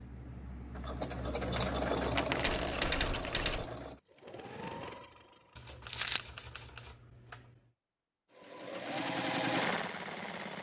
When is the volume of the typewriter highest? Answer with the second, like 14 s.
3 s.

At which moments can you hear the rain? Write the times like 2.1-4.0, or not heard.
not heard.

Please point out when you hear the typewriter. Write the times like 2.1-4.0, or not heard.
1.5-3.6, 5.5-7.6.